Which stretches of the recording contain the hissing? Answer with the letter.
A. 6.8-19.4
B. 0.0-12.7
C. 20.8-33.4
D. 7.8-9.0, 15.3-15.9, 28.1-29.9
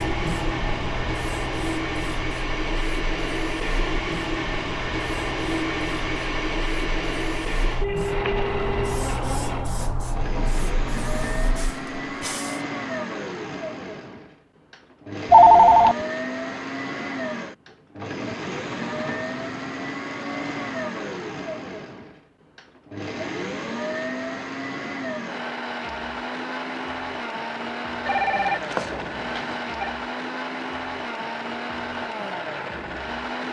B.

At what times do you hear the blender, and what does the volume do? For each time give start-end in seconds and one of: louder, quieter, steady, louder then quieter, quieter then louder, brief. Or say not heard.
0.0-33.4 steady.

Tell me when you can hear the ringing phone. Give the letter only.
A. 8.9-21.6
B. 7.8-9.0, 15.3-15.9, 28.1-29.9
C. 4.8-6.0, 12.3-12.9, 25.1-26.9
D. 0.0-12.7
B.